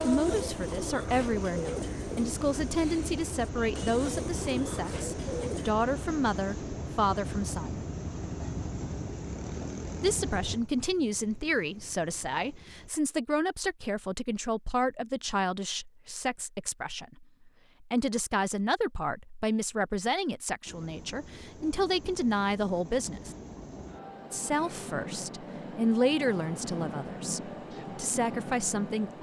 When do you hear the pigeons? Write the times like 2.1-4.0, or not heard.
0.0-5.8.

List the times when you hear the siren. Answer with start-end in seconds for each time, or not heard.
not heard.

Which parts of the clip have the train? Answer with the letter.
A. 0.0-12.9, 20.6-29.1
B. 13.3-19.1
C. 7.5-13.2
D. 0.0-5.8
A.